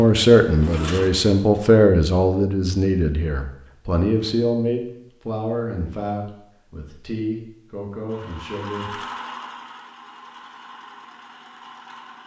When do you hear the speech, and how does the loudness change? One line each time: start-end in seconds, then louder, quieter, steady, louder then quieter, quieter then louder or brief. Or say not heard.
0.0-8.9 quieter.